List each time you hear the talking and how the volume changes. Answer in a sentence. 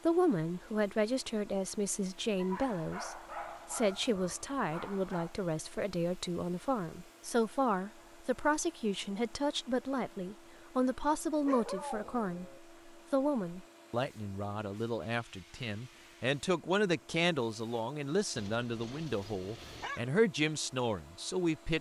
You can hear the talking from 0.1 to 21.7 s, at a steady volume.